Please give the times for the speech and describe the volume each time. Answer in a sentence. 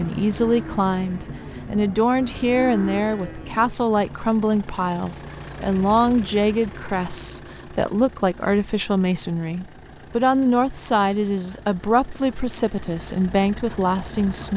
The speech can be heard from 0.0 to 14.5 s, at a steady volume.